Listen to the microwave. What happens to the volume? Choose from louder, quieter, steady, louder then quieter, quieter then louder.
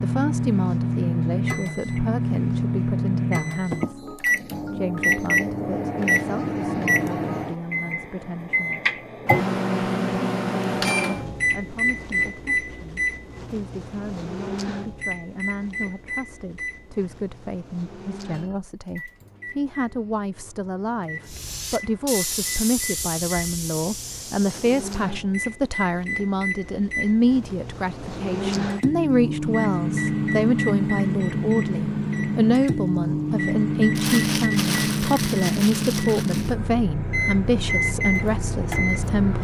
quieter then louder.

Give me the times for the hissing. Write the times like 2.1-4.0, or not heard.
21.2-24.9.